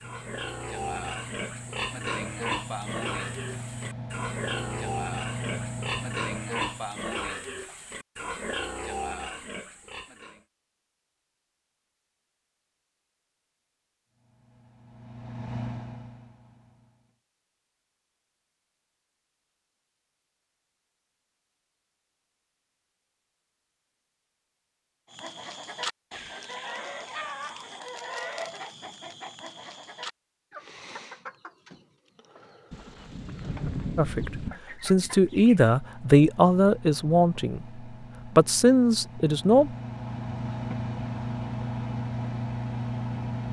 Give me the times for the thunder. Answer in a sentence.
You can hear the thunder from 32.7 to 34.5 s.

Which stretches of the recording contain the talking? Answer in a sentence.
You can hear the talking from 34.0 to 39.8 s.